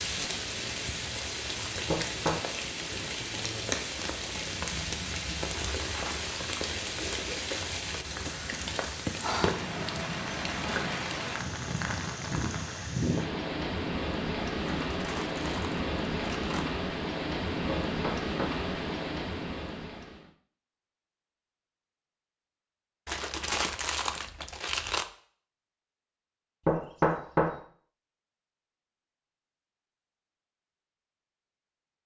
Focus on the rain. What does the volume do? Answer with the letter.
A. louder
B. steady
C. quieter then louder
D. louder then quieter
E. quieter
B.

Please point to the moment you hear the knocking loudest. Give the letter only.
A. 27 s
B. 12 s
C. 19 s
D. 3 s
A.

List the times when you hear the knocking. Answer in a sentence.
You can hear the knocking from 1.9 to 2.4 s, from 17.6 to 18.6 s and from 26.6 to 27.6 s.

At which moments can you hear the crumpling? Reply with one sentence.
You can hear the crumpling from 5.5 to 6.5 s, from 14.6 to 16.6 s and from 23.1 to 25.1 s.